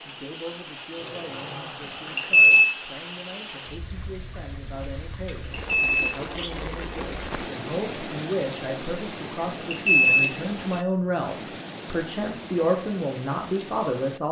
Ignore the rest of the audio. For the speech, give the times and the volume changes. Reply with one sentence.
The speech can be heard from 0.0 to 14.2 s, getting louder.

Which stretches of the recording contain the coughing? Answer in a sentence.
The coughing can't be heard in this clip.